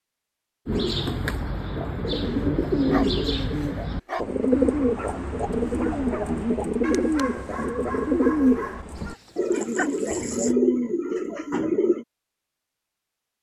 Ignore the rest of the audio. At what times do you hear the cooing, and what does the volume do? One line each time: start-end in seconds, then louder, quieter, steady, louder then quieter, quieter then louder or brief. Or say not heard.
0.7-12.1 steady.